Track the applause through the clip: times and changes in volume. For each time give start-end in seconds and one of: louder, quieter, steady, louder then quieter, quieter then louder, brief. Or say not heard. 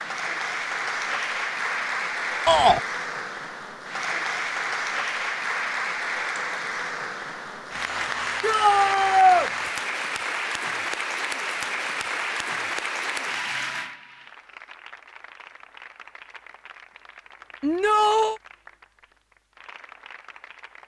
0.0-20.8 quieter.